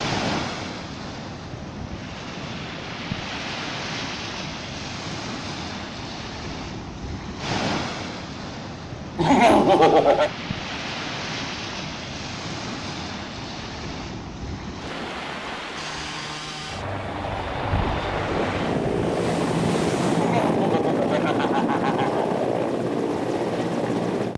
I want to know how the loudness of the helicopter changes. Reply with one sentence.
The loudness of the helicopter goes up.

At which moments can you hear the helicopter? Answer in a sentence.
The helicopter can be heard from 15.8 to 24.3 s.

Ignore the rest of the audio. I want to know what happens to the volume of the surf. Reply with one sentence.
The loudness of the surf stays about the same.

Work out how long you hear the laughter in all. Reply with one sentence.
The laughter can be heard for 3 seconds in total.